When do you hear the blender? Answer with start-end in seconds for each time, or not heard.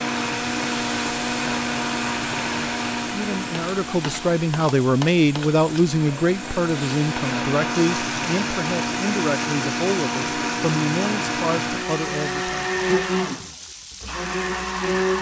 0.0-15.1.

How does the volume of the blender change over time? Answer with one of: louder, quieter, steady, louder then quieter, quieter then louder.
quieter then louder.